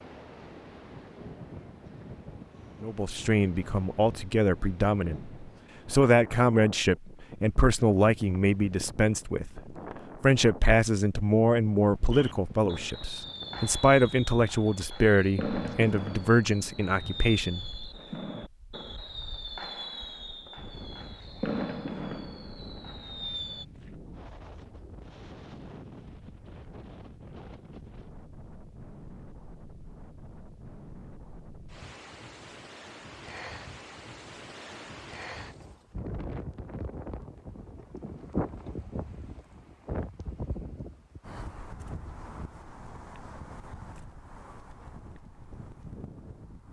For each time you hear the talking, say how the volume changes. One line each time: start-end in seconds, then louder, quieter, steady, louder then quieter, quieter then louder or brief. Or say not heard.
2.8-18.4 steady.